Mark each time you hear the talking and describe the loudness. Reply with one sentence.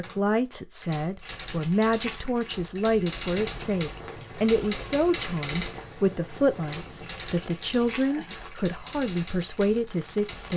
You can hear the talking from 0.0 to 10.5 s, at a steady volume.